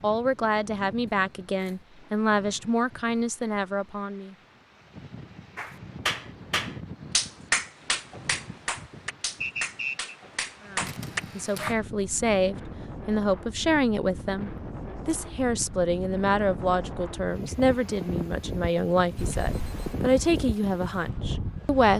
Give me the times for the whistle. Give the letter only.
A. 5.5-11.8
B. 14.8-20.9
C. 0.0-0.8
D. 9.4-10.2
D.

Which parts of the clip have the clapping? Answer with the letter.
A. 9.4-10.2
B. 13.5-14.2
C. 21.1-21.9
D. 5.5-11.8
D.